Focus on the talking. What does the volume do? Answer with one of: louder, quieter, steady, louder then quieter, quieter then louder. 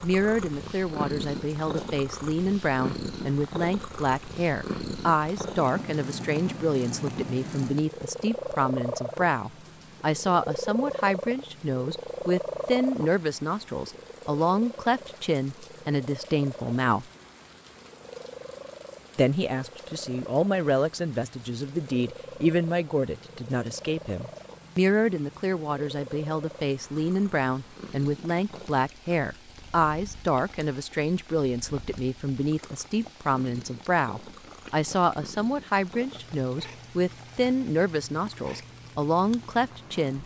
steady.